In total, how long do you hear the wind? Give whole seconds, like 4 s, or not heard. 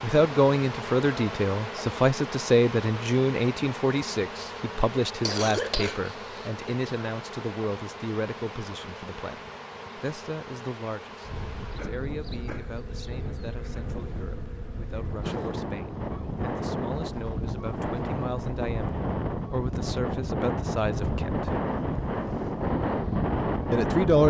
13 s.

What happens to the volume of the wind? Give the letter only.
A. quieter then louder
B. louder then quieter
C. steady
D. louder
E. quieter
D.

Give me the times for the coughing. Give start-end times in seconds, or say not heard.
5.2-6.5.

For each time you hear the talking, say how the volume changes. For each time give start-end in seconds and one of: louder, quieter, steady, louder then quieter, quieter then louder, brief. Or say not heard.
0.0-21.6 quieter then louder
23.7-24.2 brief.